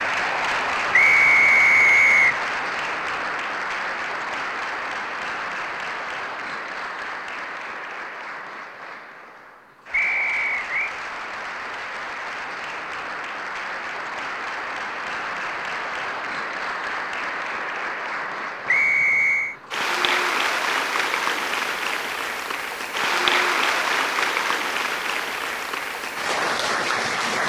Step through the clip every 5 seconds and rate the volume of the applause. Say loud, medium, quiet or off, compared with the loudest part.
loud, medium, medium, medium, loud, loud.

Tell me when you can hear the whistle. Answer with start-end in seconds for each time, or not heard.
0.9-2.4, 9.9-10.9, 18.6-19.6.